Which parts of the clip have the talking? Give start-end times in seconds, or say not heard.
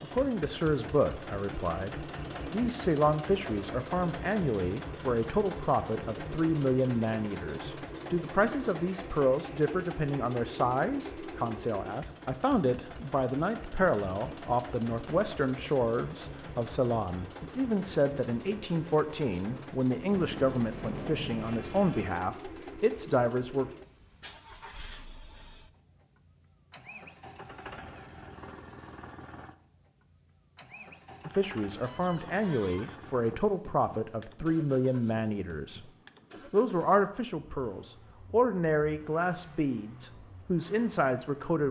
0.0-23.6, 31.2-35.9, 36.5-41.6.